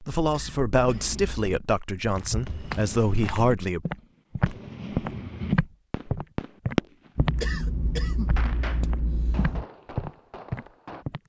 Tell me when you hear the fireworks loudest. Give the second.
7 s.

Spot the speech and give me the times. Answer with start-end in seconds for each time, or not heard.
0.0-3.8.